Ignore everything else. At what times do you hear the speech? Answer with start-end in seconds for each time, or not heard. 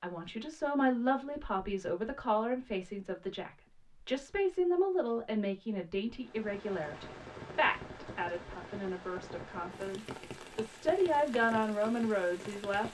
0.0-12.8.